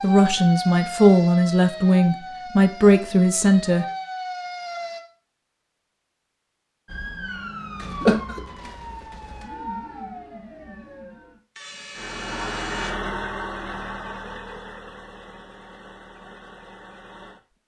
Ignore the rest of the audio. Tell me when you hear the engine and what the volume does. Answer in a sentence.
You can hear the engine from 11.9 to 17.4 s, getting quieter.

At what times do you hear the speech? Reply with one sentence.
You can hear the speech from 0.0 to 3.9 s.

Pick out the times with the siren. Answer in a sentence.
You can hear the siren from 0.0 to 5.0 s and from 6.8 to 12.9 s.